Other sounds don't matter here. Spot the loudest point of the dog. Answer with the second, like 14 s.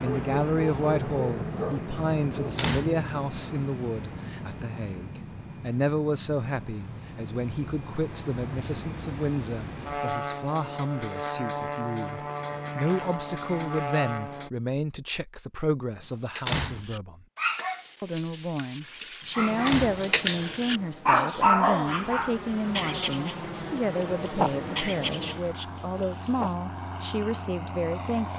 22 s.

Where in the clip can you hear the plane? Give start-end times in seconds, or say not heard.
0.0-14.5, 19.4-28.3.